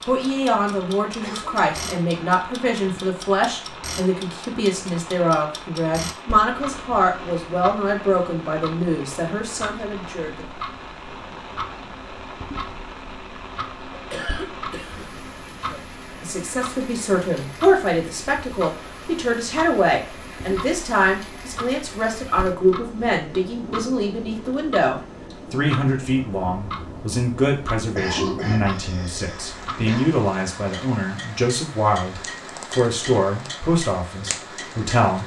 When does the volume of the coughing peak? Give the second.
28 s.